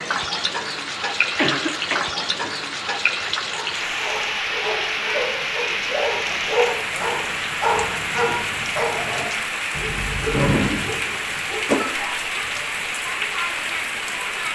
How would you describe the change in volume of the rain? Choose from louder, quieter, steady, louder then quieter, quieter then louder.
steady.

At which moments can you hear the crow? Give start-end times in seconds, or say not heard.
not heard.